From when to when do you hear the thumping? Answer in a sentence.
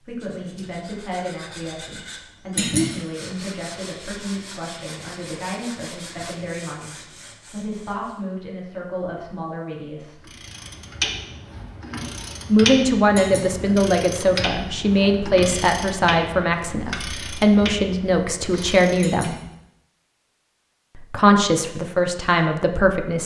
The thumping can be heard from 2.5 to 3.0 s, from 13.2 to 13.6 s and from 19.0 to 19.4 s.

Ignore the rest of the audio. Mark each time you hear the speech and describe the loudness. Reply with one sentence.
You can hear the speech from 0.0 to 10.3 s, at a steady volume; from 12.4 to 19.4 s, at a steady volume; and briefly from 20.9 to 23.2 s.